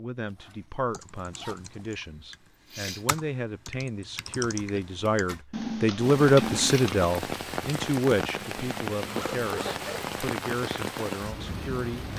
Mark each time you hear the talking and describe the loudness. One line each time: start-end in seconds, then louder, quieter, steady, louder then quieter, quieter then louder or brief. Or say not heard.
0.0-12.1 louder then quieter.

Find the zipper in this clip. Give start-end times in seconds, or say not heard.
0.3-1.6, 4.6-5.4, 8.3-10.3.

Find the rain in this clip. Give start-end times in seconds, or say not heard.
6.0-12.1.